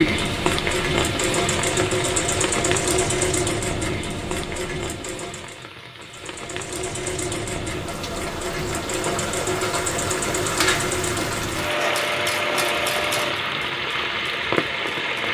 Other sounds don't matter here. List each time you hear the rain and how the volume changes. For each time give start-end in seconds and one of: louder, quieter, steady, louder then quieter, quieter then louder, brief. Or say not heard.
0.0-15.2 quieter then louder.